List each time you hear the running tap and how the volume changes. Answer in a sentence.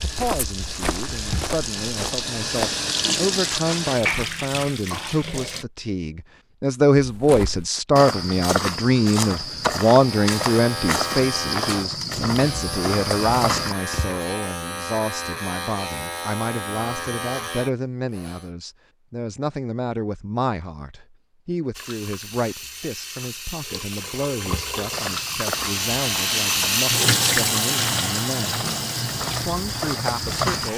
You can hear the running tap from 0.0 to 5.7 s, getting louder then quieter; and from 21.7 to 30.7 s, getting louder then quieter.